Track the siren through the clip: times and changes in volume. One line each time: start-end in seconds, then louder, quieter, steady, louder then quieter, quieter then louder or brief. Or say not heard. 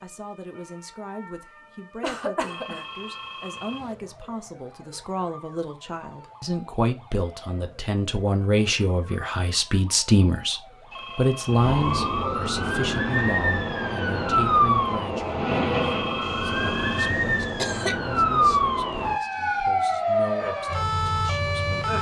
0.0-21.9 louder.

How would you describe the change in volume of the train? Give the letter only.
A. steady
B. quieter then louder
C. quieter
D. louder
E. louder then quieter
E.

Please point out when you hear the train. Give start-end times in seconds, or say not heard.
12.5-17.5.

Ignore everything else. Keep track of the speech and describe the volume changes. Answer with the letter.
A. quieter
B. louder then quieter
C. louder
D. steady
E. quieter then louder
B.